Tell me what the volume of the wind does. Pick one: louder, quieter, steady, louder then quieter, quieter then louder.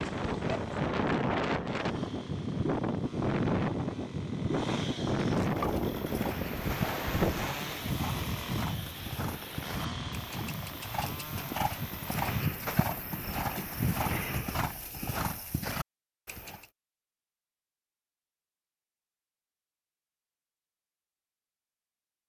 quieter.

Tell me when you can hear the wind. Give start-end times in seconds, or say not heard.
0.0-14.4.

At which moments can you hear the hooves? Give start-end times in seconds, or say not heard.
5.5-16.6.